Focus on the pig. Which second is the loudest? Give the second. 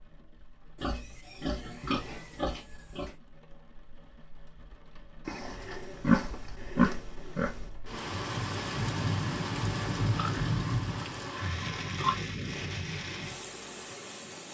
6 s.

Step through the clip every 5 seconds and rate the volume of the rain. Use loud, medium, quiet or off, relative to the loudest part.
quiet, loud, loud.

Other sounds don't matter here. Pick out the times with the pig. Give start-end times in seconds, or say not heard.
0.8-3.1, 5.2-7.5, 10.2-12.2.